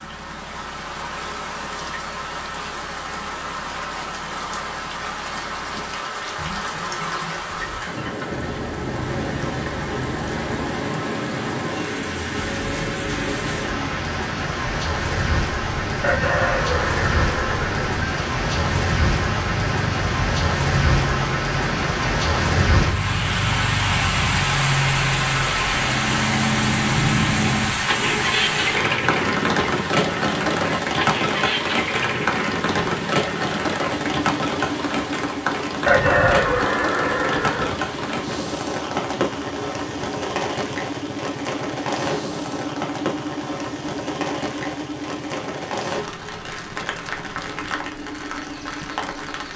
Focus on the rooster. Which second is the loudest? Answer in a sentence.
The volume of the rooster peaks at 36 seconds.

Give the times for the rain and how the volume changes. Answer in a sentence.
The rain can be heard from 0.0 to 49.5 s, getting louder then quieter.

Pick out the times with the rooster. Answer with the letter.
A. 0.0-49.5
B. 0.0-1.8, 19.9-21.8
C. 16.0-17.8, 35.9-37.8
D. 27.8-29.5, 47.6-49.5
C.